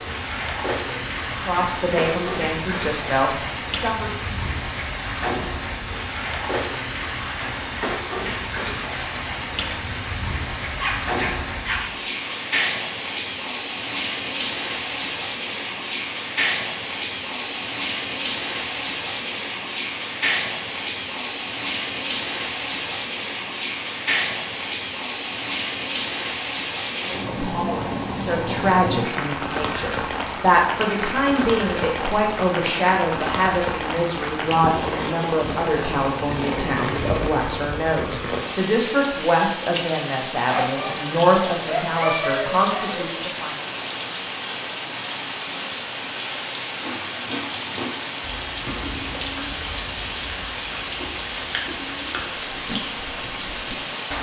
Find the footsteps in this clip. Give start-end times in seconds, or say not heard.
not heard.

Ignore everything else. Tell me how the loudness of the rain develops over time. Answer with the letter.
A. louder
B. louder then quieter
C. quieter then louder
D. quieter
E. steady
E.